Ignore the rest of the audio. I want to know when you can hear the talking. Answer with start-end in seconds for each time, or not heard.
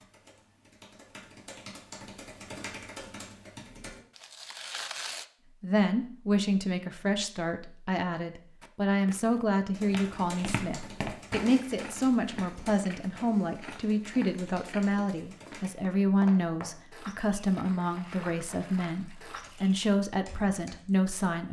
5.6-21.4.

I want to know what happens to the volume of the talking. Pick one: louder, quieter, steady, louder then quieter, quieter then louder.
steady.